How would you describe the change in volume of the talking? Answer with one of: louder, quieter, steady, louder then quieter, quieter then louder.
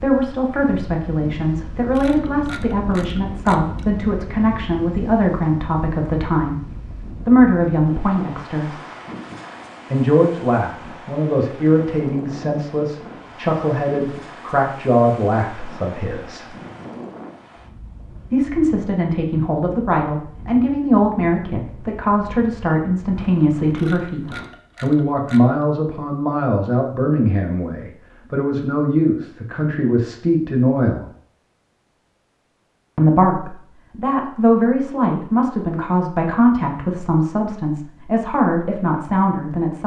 steady.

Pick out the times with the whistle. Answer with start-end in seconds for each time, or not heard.
not heard.